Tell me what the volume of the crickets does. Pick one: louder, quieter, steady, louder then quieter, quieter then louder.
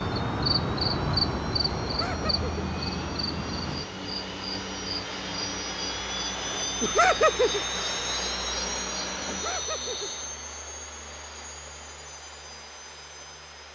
quieter.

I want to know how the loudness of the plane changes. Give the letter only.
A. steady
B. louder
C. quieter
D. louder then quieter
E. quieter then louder
D.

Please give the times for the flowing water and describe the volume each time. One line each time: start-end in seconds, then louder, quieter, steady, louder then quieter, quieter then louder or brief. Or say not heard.
not heard.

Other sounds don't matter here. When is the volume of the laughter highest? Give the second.
7 s.